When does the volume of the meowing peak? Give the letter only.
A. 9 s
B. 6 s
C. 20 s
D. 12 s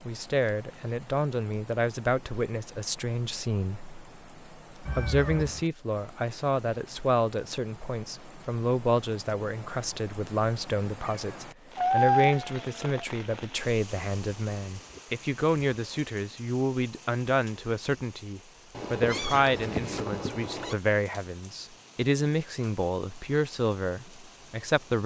D.